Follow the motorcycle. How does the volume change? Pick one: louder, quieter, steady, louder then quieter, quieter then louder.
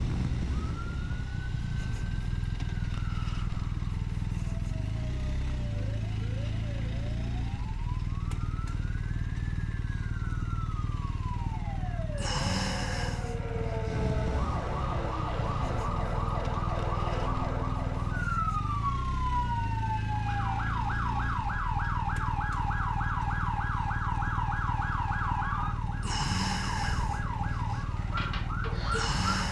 steady.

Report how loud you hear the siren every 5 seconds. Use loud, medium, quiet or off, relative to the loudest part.
quiet, quiet, medium, loud, loud, loud.